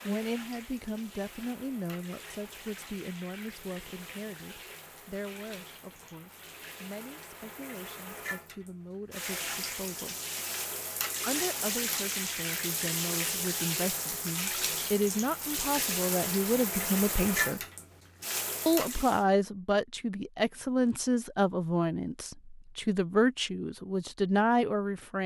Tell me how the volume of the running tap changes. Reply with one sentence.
The loudness of the running tap goes up.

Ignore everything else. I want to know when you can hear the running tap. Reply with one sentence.
You can hear the running tap from 0.0 to 19.2 s.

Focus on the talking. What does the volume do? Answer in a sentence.
The loudness of the talking goes down, then up.